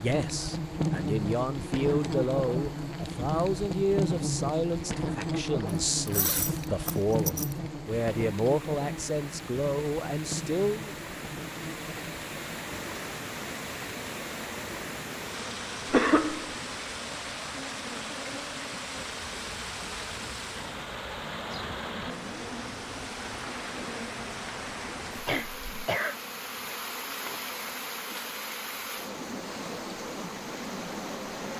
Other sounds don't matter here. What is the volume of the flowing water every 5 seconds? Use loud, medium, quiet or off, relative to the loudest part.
quiet, medium, loud, loud, loud, loud, loud.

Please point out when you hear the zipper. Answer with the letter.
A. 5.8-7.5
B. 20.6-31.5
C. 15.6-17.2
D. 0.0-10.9
A.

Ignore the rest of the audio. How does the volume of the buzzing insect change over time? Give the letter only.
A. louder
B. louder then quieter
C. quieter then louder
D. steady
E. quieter
E.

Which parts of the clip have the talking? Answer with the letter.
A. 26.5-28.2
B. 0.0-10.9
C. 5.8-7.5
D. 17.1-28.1
B.